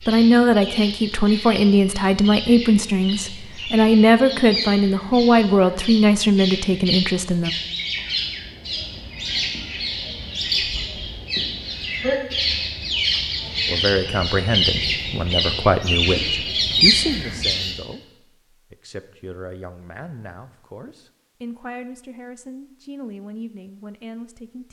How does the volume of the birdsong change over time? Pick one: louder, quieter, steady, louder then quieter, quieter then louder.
louder.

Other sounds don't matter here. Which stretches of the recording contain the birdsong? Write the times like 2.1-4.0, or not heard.
0.0-17.8.